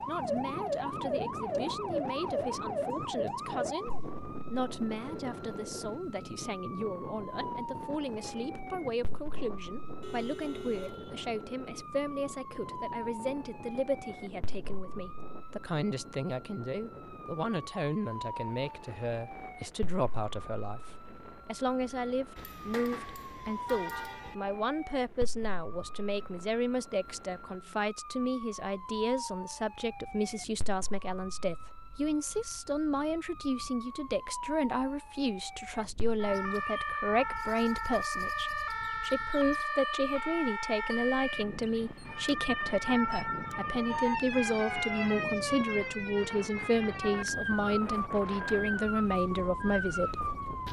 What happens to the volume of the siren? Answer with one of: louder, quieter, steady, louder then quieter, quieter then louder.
quieter then louder.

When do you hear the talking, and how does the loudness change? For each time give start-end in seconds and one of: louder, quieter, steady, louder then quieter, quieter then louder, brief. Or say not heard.
0.1-50.4 louder.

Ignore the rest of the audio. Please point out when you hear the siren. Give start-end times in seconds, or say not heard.
0.0-50.6.